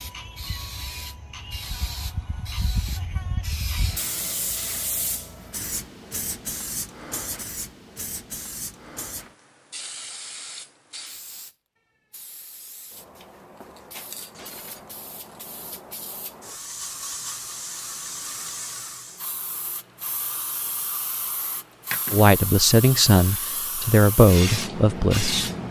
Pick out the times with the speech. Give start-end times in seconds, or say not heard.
22.1-25.5.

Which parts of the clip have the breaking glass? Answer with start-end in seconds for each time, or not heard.
14.3-15.0.